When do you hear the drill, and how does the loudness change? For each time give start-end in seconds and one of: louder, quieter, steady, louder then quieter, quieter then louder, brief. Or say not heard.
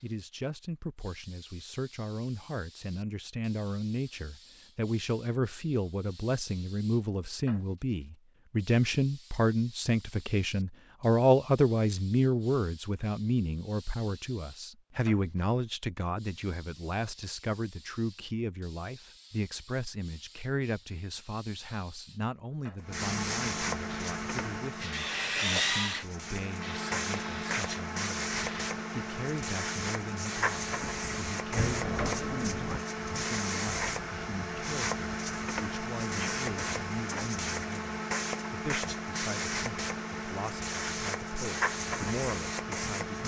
23.9-28.7 louder then quieter.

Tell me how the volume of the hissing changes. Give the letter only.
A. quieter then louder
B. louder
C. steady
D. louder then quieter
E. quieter
B.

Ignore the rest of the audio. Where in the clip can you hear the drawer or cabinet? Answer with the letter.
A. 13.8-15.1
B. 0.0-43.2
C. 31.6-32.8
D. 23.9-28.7
C.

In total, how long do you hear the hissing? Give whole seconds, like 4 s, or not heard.
43 s.